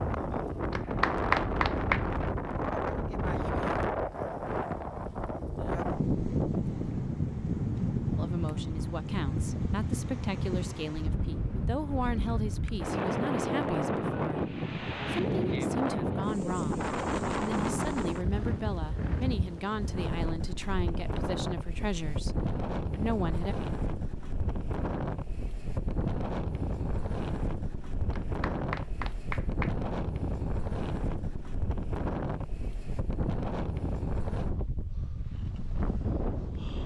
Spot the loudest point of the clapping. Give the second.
1 s.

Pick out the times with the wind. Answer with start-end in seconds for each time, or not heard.
0.0-36.8.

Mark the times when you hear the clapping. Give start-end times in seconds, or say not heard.
0.7-2.0, 28.1-29.8.